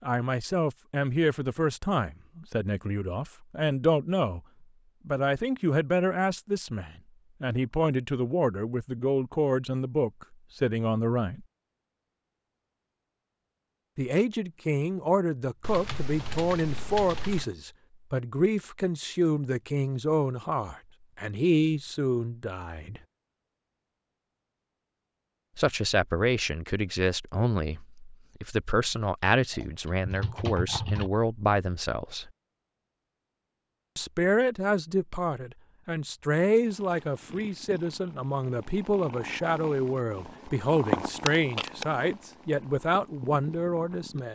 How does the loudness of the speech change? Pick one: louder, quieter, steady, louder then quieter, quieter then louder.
steady.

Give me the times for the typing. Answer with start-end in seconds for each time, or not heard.
15.6-17.4, 29.5-31.1.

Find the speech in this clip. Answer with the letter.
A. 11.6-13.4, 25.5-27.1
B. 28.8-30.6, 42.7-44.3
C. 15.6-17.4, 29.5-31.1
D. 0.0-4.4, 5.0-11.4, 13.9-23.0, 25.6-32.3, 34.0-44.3
D.